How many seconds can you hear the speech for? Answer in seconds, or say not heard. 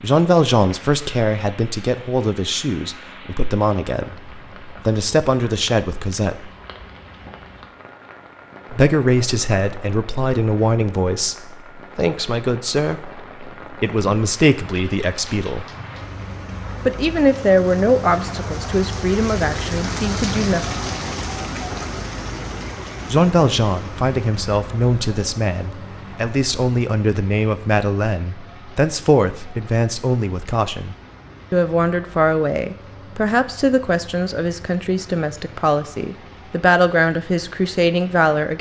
33 s.